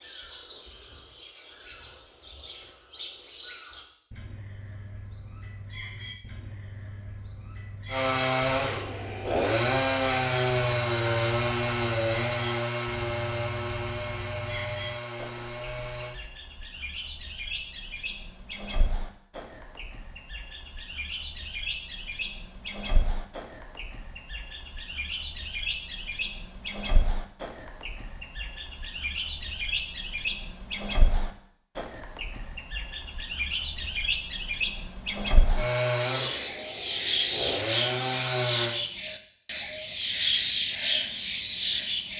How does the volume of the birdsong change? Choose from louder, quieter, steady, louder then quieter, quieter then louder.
louder.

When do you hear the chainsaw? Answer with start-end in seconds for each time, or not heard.
7.8-16.1, 35.5-38.8.